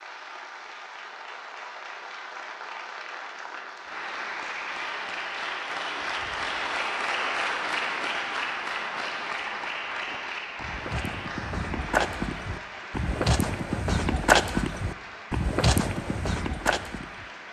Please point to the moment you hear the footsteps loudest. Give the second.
14 s.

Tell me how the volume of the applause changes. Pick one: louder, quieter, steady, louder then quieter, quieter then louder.
louder then quieter.